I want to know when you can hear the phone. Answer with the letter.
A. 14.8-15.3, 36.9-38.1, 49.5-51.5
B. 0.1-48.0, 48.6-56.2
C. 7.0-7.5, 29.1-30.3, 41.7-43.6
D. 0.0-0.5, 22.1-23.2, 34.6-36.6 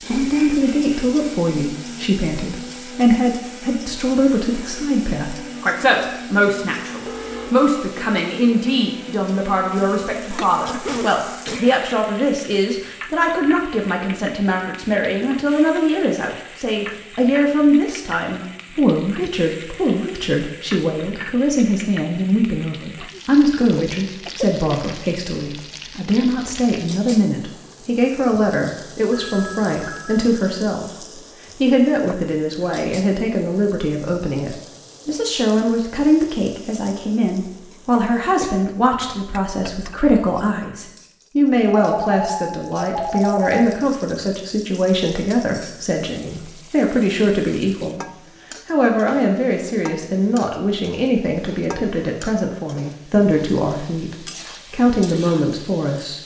C.